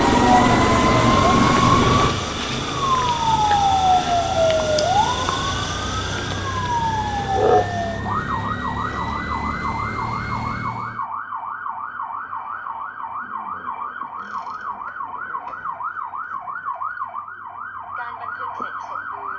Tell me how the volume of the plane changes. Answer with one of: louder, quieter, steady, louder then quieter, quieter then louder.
quieter.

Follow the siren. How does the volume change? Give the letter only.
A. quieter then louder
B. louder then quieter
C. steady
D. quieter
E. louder
D.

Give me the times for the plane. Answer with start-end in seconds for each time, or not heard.
0.0-11.1.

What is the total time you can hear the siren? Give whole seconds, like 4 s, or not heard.
19 s.